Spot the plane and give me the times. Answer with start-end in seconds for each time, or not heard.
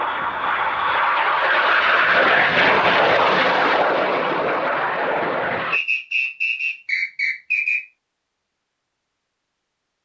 0.0-5.8.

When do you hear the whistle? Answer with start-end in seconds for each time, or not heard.
5.7-7.8.